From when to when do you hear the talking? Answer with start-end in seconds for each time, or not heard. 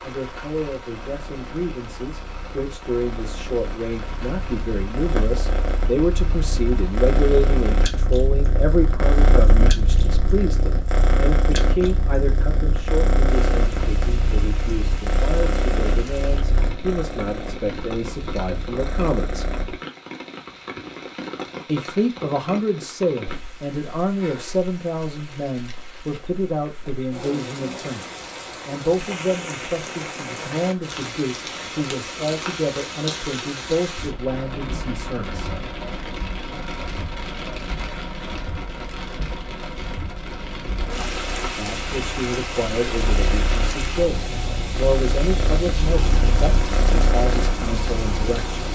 0.0-19.6, 21.6-35.5, 41.5-48.6.